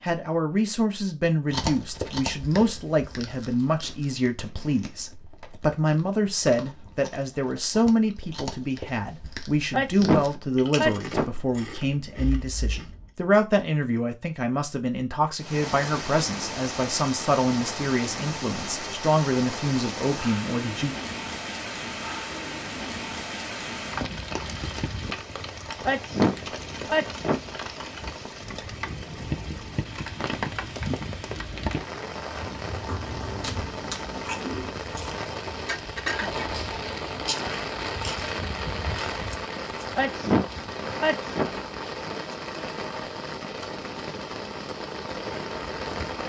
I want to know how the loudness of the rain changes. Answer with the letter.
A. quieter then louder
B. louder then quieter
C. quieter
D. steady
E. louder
D.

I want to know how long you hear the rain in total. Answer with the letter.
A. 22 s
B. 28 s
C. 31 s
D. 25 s
C.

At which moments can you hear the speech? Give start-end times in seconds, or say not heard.
0.0-20.9.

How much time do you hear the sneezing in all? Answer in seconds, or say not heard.
5 s.